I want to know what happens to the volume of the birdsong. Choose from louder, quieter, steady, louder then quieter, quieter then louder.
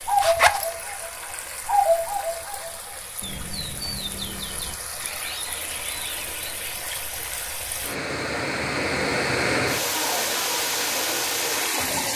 louder then quieter.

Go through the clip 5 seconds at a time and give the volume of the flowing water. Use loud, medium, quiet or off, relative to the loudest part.
quiet, loud, loud.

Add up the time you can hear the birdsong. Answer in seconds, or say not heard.
7 s.